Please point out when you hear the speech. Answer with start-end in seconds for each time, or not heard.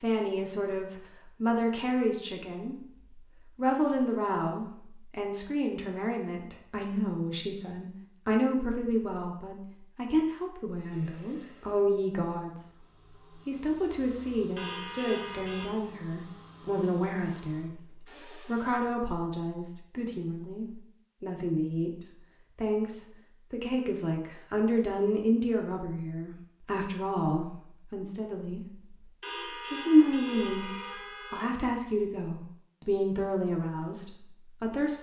0.0-12.6, 13.4-21.9, 22.6-28.9, 29.7-34.9.